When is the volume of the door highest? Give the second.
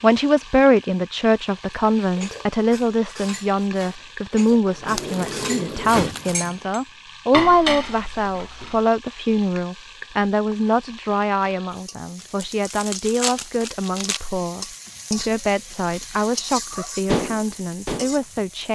6 s.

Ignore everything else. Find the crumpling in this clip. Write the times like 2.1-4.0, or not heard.
5.0-6.5, 12.2-14.2.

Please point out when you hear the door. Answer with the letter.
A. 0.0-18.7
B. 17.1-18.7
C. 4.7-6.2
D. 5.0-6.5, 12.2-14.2
C.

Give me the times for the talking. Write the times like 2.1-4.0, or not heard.
0.0-18.7.